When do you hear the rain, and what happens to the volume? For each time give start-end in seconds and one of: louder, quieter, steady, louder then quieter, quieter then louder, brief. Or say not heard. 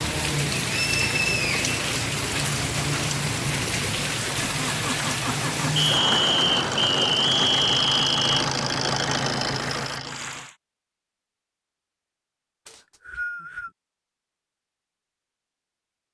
0.0-10.6 quieter.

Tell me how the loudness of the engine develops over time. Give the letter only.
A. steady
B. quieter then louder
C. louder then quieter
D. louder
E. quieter
D.